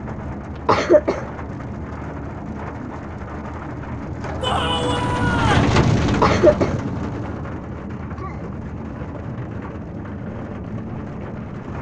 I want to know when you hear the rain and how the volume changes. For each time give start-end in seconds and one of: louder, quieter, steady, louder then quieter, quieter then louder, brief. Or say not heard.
0.0-11.7 louder then quieter.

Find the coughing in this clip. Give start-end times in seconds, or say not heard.
0.7-1.2, 6.2-6.8.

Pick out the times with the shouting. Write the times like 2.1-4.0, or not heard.
4.4-5.8.